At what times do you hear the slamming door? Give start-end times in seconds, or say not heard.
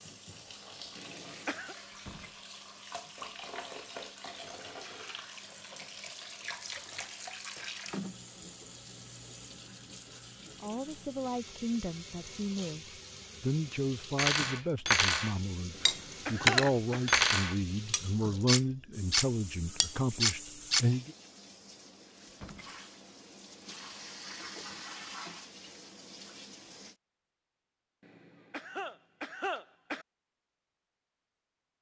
1.9-2.4, 22.2-22.8.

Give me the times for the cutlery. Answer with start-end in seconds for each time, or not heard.
14.2-20.9.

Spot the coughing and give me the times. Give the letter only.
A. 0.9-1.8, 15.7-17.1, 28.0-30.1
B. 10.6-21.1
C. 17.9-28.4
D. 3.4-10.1
A.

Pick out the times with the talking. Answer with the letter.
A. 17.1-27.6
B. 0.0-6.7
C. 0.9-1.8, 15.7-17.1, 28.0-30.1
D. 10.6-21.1
D.